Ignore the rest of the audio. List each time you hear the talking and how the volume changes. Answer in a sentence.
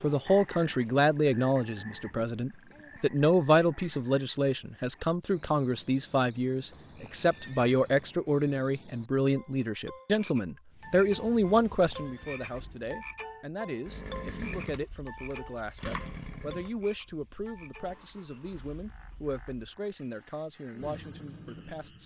The talking can be heard from 0.0 to 22.0 s, getting quieter.